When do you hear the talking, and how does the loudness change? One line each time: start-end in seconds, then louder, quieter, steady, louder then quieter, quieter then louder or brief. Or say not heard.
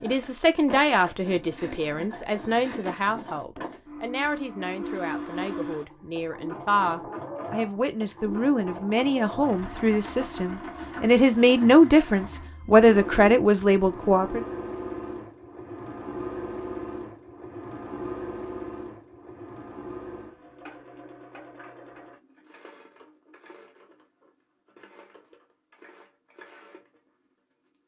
0.0-14.4 quieter then louder.